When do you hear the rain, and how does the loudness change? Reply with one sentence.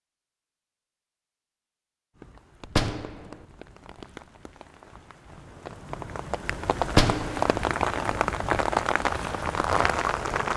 The rain can be heard from 2.1 to 10.5 s, getting louder.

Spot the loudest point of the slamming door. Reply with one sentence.
The volume of the slamming door peaks at 7 seconds.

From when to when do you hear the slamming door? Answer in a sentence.
You can hear the slamming door from 2.6 to 3.4 s and from 6.8 to 7.5 s.